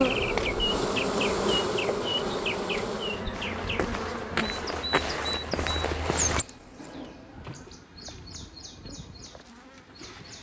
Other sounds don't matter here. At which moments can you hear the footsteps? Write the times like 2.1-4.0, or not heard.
3.3-6.5.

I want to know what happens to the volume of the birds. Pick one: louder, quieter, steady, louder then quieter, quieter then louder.
quieter.